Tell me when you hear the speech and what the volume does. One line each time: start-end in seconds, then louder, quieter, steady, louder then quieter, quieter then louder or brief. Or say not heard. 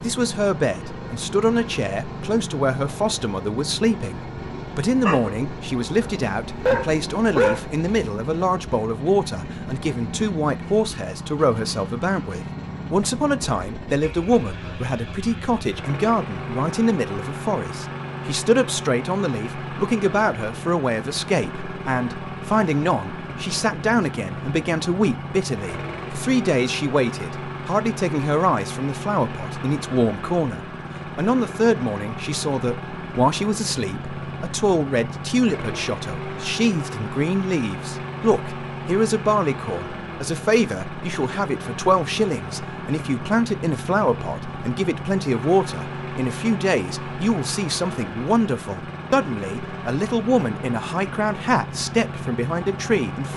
0.0-53.3 steady.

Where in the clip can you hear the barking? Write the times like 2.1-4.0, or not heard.
5.0-5.4, 6.0-7.7.